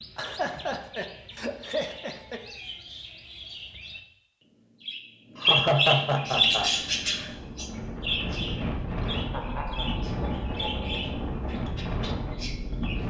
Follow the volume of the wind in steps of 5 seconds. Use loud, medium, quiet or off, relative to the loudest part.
off, loud, loud.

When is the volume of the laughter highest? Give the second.
6 s.